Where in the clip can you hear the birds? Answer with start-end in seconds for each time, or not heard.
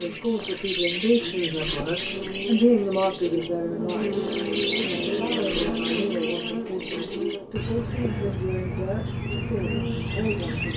0.0-10.7.